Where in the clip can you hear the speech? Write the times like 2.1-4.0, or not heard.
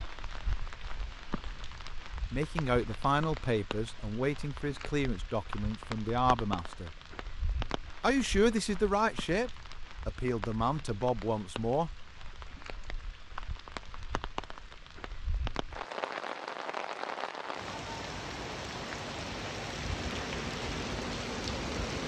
2.3-7.0, 8.0-11.9.